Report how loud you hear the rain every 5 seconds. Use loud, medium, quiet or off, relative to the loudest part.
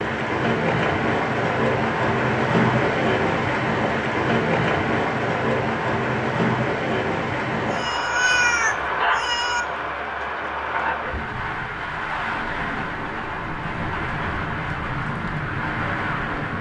loud, loud, medium, medium.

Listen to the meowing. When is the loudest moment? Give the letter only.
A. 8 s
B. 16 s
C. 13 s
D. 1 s
A.